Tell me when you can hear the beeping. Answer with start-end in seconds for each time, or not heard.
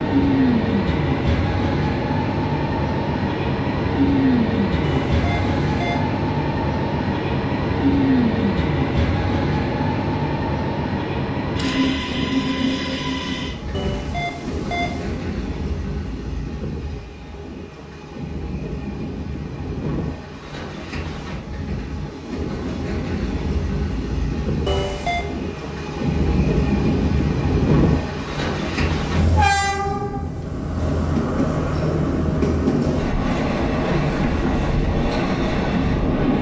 4.8-6.0, 13.7-15.2, 24.6-25.2.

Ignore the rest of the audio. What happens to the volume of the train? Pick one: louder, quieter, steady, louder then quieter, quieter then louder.
quieter then louder.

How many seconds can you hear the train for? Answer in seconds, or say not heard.
36 s.